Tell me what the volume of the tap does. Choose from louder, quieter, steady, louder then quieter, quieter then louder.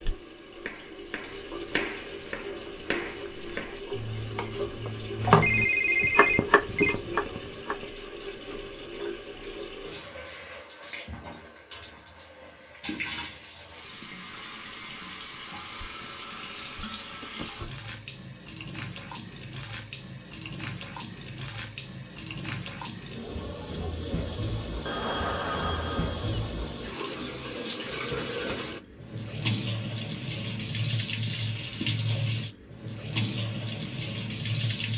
louder.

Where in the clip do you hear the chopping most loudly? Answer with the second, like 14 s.
5 s.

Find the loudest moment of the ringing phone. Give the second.
6 s.